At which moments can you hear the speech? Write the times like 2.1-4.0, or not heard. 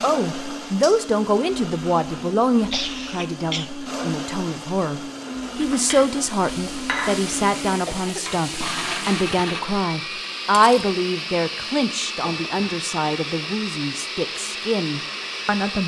0.0-15.8.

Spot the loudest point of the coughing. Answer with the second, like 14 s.
3 s.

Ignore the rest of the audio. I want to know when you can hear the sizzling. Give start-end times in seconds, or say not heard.
5.5-9.3.